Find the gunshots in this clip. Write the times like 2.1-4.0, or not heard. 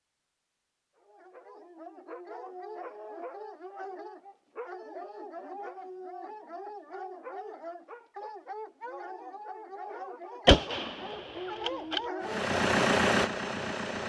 10.4-12.0.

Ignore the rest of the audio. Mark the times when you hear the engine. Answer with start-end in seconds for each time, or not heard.
12.2-14.0.